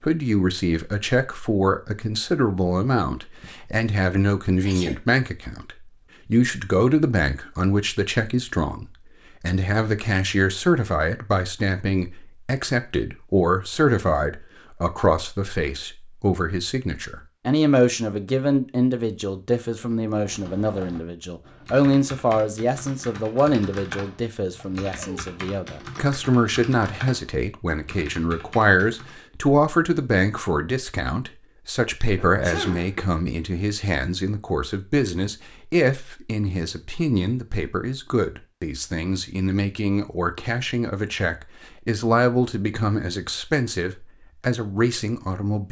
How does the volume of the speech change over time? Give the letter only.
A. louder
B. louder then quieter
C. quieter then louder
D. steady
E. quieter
D.